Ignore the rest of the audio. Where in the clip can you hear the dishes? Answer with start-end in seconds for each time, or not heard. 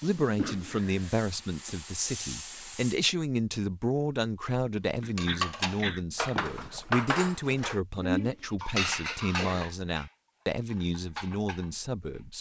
5.2-12.2.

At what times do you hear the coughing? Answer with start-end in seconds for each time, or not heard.
0.0-1.2, 5.0-6.0, 8.6-9.7.